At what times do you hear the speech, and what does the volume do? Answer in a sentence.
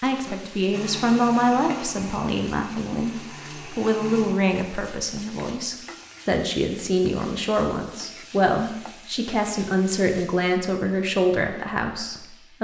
The speech can be heard from 0.0 to 12.5 s, at a steady volume.